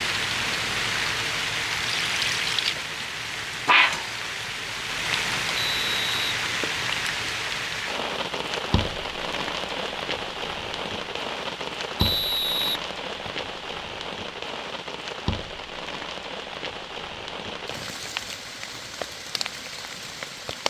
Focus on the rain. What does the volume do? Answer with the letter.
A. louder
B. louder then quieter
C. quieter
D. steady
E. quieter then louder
C.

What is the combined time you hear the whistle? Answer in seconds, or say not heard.
3 s.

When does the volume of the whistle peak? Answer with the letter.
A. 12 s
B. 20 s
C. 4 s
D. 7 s
A.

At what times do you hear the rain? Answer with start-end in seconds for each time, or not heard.
0.0-20.6.